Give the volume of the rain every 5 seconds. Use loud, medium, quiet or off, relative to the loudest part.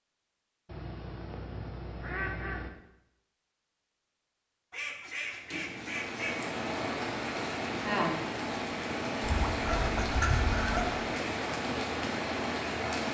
off, loud, loud.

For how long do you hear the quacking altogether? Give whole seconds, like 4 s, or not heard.
6 s.